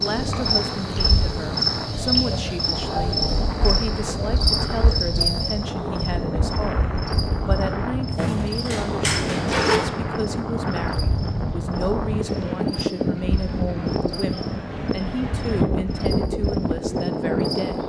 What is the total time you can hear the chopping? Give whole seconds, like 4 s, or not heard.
not heard.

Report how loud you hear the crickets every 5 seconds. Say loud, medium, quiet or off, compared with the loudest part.
loud, medium, quiet, quiet.